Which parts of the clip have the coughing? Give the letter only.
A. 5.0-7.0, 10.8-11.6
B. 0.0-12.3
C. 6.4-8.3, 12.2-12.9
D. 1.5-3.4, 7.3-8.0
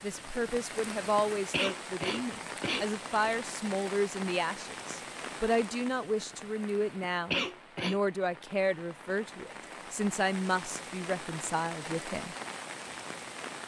D.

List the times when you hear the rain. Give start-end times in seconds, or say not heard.
0.0-13.6.